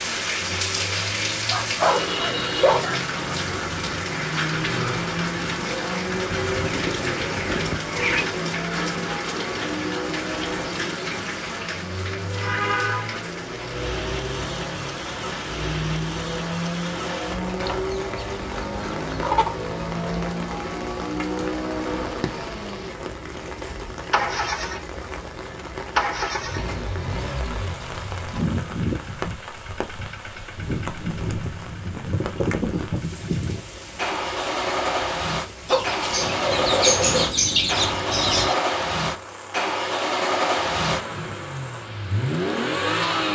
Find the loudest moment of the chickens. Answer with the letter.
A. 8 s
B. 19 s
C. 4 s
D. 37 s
D.